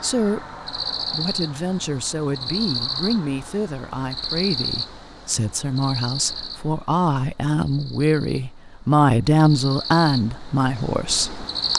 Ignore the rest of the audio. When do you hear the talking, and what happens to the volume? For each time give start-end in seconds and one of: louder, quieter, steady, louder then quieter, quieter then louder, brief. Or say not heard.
0.0-11.4 louder.